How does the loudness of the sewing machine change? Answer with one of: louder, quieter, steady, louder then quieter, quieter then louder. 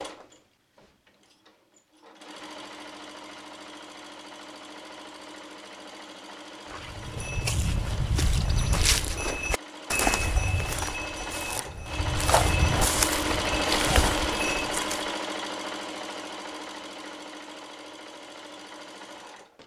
louder then quieter.